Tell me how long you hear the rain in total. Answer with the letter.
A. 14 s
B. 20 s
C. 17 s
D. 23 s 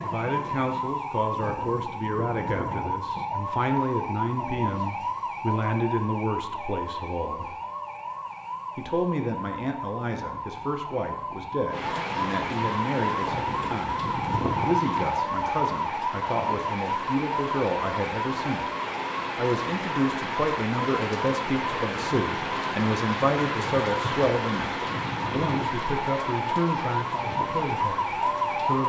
C.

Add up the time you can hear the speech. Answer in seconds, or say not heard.
27 s.